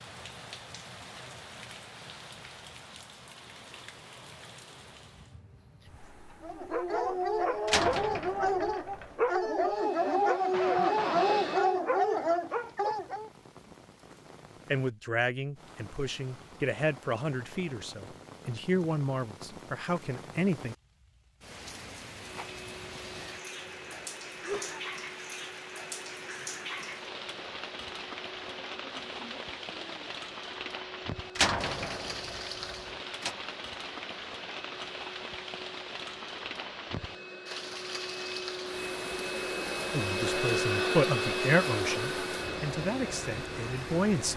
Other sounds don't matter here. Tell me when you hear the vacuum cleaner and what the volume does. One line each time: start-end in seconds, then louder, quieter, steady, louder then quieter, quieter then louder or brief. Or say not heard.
9.7-11.8 brief
22.3-44.3 louder.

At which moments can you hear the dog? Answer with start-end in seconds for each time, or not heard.
6.4-13.3.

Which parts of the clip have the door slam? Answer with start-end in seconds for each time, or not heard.
7.7-9.2, 31.4-33.4.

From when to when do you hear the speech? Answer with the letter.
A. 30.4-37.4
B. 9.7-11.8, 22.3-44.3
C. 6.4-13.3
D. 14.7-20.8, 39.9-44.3
D.